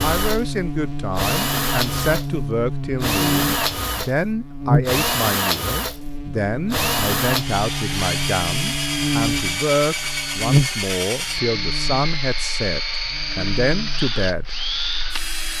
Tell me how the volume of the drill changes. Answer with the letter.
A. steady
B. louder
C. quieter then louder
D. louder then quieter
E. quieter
A.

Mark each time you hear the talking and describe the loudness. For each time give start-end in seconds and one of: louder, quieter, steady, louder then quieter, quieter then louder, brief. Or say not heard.
0.0-14.6 steady.